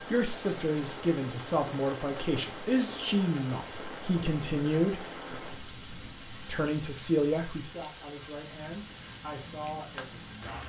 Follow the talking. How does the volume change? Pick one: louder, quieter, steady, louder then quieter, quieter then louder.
quieter.